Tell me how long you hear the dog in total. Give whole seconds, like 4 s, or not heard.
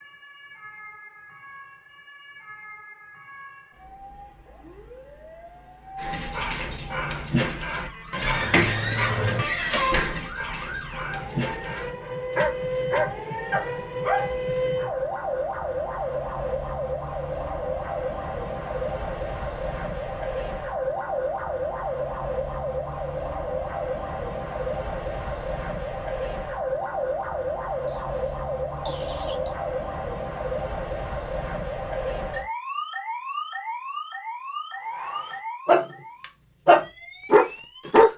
12 s.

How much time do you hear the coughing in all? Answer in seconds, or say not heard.
2 s.